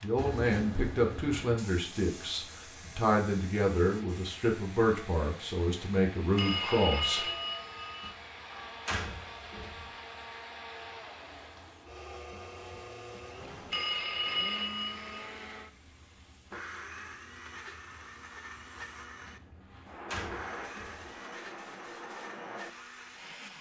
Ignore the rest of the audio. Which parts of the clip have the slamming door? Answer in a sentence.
The slamming door can be heard from 8.0 to 9.9 s and from 19.2 to 21.1 s.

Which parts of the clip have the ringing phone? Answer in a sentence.
The ringing phone can be heard from 6.3 to 8.2 s and from 13.7 to 15.3 s.